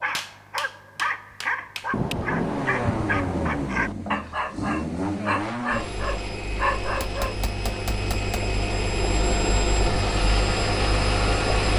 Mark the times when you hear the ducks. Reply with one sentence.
The ducks can't be heard in this clip.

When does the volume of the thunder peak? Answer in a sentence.
The loudest moment of the thunder is at 2 seconds.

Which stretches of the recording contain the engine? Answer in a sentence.
You can hear the engine from 2.3 to 11.7 s.